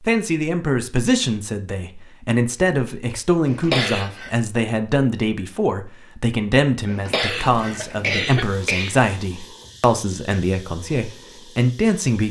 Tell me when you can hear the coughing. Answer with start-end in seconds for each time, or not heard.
3.5-4.3, 6.8-8.9.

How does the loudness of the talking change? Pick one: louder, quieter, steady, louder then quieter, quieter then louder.
steady.